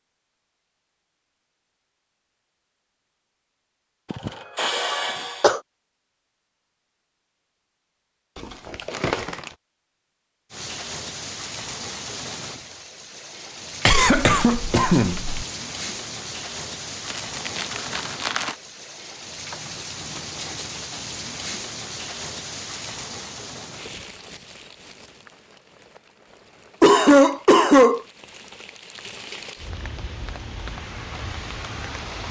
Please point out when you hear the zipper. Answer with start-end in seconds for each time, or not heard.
not heard.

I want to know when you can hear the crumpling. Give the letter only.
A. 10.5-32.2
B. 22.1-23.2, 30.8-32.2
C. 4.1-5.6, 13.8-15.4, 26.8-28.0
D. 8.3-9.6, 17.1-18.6
D.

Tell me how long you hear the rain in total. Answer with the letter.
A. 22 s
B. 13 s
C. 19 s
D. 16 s
A.